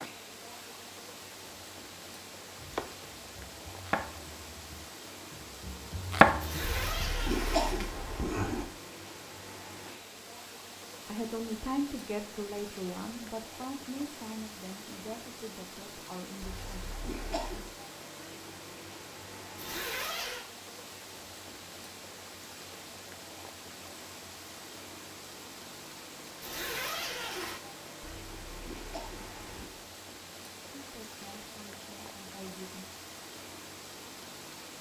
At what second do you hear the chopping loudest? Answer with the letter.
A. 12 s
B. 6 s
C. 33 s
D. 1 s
B.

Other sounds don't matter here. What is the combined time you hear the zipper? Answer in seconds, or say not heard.
4 s.